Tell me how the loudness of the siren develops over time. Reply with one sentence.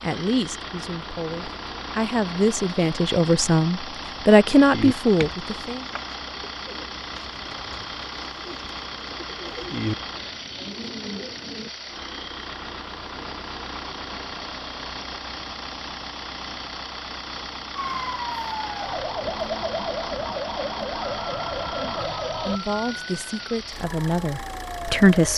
The volume of the siren goes down.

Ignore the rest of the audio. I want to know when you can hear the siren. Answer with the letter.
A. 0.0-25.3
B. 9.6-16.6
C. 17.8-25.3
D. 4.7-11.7
C.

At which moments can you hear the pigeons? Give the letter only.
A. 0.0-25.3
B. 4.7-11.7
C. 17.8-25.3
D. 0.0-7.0
B.